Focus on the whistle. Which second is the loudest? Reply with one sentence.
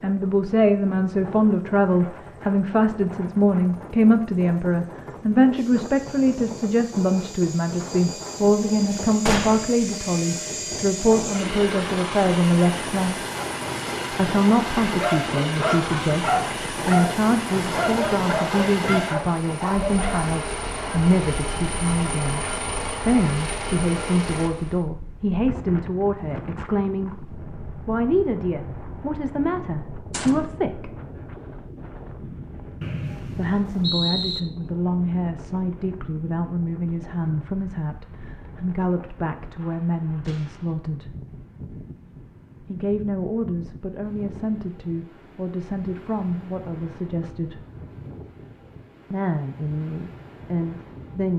The volume of the whistle peaks at 34 seconds.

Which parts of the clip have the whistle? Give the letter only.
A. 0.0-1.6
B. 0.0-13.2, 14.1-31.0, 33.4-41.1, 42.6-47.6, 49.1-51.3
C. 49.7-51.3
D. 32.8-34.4
D.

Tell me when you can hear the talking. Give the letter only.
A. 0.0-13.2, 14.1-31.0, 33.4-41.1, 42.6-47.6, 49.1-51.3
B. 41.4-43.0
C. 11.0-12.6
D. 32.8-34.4
A.